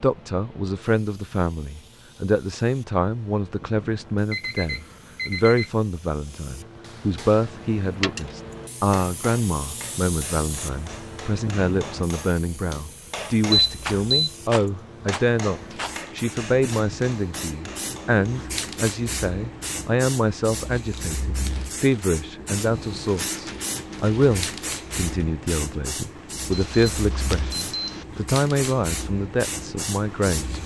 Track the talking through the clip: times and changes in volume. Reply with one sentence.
You can hear the talking from 0.0 to 30.6 s, at a steady volume.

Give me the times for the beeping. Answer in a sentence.
The beeping can be heard from 4.3 to 5.7 s, from 13.5 to 14.1 s and from 26.5 to 28.0 s.